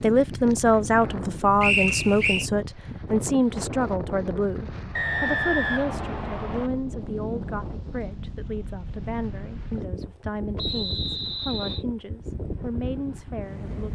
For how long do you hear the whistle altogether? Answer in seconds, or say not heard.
4 s.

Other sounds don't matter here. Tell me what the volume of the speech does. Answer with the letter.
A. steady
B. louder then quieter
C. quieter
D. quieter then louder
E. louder
C.